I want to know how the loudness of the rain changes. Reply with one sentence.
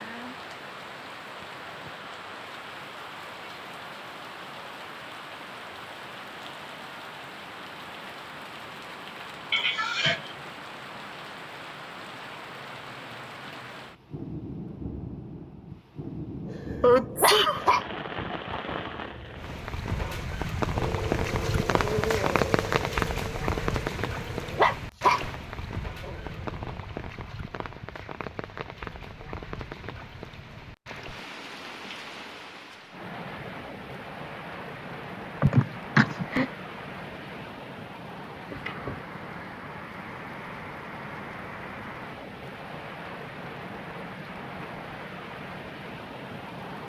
The volume of the rain goes up, then down.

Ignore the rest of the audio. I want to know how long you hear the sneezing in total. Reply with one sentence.
You can hear the sneezing for 3 seconds altogether.